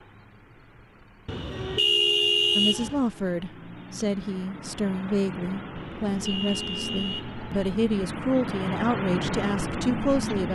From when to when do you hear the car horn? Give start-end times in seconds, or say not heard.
1.2-3.0, 5.8-7.5.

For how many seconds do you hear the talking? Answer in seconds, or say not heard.
8 s.